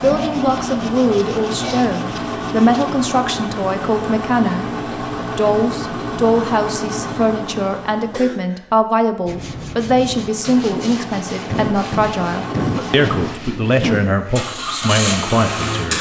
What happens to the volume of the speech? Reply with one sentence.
The loudness of the speech stays about the same.